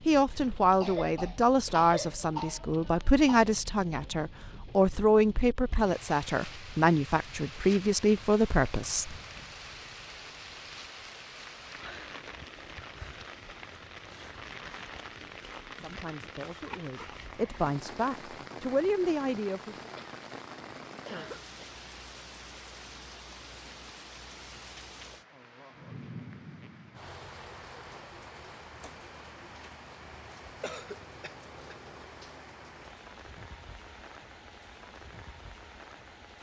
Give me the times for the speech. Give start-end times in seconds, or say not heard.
0.1-9.2, 15.8-19.8.